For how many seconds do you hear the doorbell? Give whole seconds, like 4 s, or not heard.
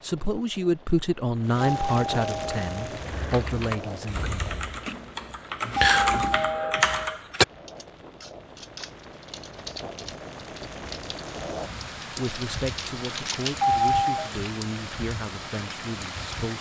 3 s.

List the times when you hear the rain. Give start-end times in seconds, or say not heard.
0.0-16.5.